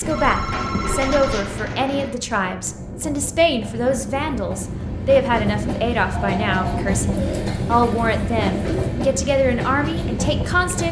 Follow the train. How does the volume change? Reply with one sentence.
The volume of the train goes up.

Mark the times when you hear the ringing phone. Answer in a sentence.
The ringing phone can be heard from 0.0 to 1.5 s and from 6.1 to 6.8 s.